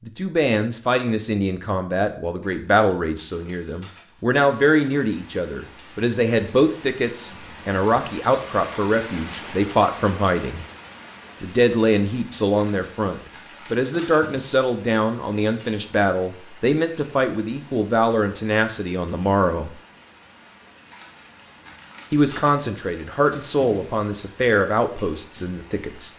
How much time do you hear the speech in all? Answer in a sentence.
You can hear the speech for 23 seconds altogether.